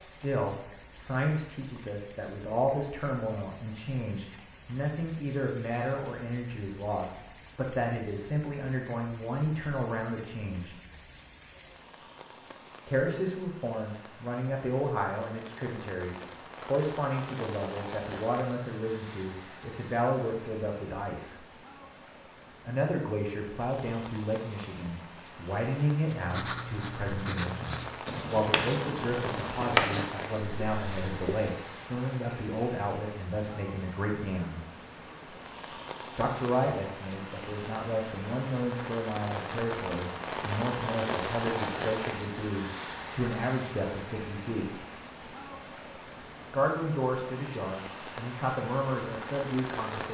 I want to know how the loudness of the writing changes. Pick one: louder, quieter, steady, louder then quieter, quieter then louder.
louder then quieter.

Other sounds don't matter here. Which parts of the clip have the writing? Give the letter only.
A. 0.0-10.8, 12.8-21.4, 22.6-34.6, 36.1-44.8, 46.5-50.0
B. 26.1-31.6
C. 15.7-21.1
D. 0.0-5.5
B.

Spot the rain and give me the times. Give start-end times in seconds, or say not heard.
0.0-50.0.